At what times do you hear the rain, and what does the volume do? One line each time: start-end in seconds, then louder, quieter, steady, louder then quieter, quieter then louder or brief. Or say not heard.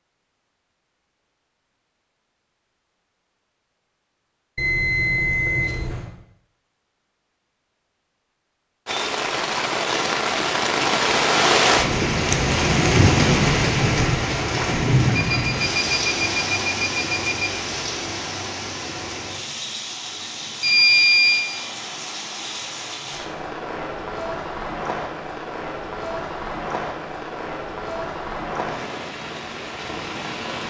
8.8-30.6 quieter.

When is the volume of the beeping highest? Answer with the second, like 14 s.
21 s.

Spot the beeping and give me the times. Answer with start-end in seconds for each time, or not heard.
4.5-6.1, 15.1-17.5, 20.6-21.5.